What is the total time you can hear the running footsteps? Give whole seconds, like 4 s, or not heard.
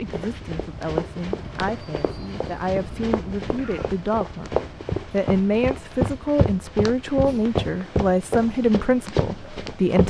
10 s.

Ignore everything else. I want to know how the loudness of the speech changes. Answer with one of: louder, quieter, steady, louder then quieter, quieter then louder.
louder.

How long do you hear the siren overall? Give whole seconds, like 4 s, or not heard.
not heard.